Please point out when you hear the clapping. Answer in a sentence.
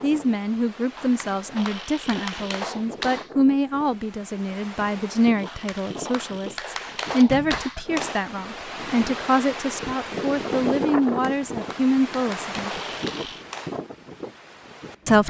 You can hear the clapping from 0.9 to 3.3 s, from 5.5 to 8.2 s and from 11.0 to 13.7 s.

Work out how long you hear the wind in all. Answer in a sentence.
You can hear the wind for 15 seconds altogether.